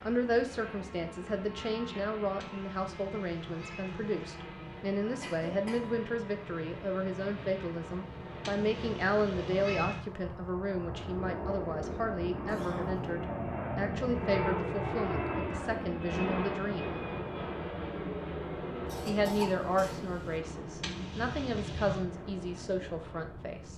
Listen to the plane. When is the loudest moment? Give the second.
15 s.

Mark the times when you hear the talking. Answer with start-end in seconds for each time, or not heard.
0.0-16.9, 19.1-23.7.